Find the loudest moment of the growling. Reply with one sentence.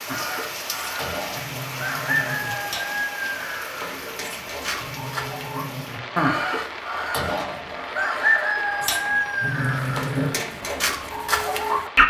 The loudest moment of the growling is at 10 seconds.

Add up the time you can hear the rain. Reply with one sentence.
You can hear the rain for 12 seconds altogether.